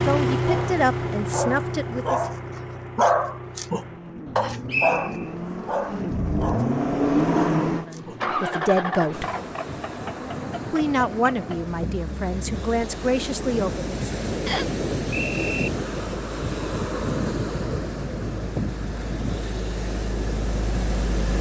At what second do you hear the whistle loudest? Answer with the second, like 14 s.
5 s.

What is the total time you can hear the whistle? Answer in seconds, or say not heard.
2 s.